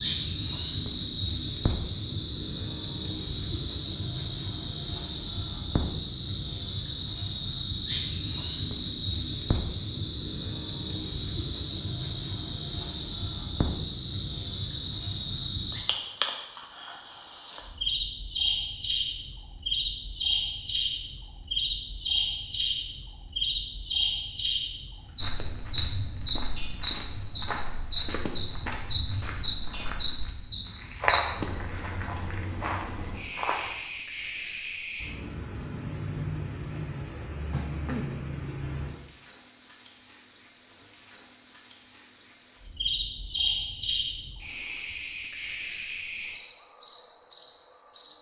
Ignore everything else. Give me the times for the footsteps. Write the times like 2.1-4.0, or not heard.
25.1-33.9.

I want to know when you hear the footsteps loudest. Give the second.
31 s.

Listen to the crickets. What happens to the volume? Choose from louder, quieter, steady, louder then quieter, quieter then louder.
steady.